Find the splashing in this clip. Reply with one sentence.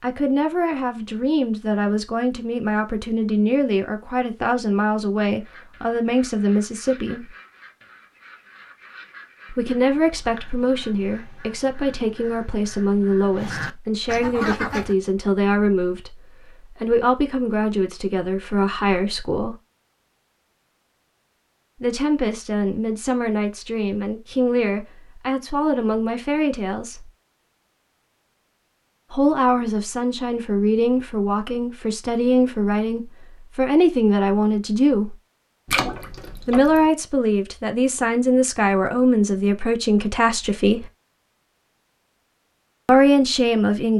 The splashing can be heard from 35.6 to 36.9 s.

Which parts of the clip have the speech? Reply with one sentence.
You can hear the speech from 0.0 to 7.3 s, from 9.5 to 19.6 s, from 21.8 to 27.1 s, from 29.1 to 35.1 s, from 36.5 to 40.9 s and from 42.9 to 43.9 s.